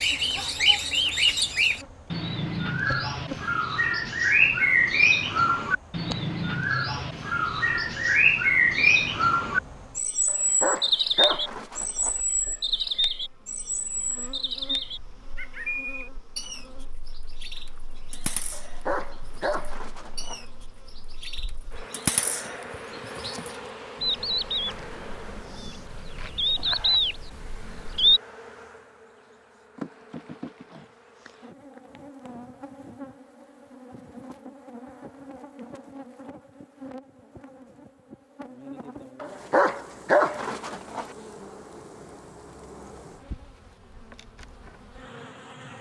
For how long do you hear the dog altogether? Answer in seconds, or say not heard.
6 s.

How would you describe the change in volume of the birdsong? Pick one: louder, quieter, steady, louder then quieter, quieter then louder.
quieter then louder.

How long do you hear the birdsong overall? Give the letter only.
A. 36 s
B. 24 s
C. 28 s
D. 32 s
C.